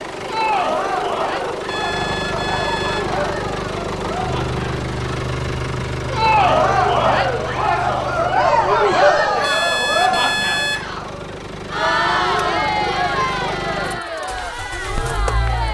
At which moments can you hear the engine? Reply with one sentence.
The engine can be heard from 0.0 to 15.6 s.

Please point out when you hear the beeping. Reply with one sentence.
You can hear the beeping from 1.6 to 3.1 s and from 9.4 to 10.9 s.